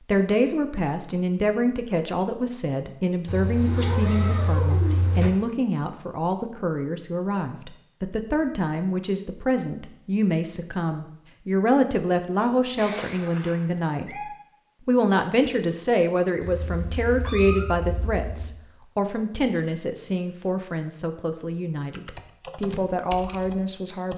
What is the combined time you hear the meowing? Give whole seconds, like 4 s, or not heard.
6 s.